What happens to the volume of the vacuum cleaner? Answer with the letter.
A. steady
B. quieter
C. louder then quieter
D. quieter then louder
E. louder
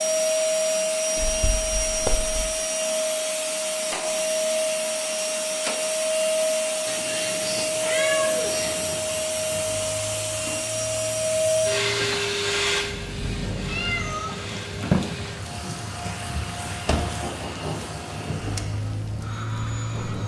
B.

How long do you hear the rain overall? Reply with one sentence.
The rain can be heard for 12 seconds in total.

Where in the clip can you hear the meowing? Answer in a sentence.
You can hear the meowing from 1.1 to 2.5 s, from 6.8 to 8.9 s and from 13.7 to 14.3 s.